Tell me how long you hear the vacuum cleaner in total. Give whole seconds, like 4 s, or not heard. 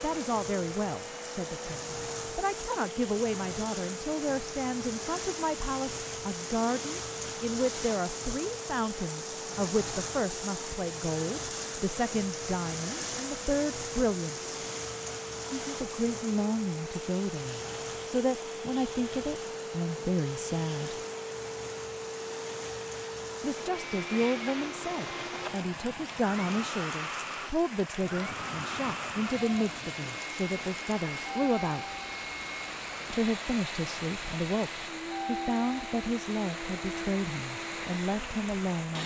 39 s.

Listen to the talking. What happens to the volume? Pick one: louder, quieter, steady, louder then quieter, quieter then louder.
steady.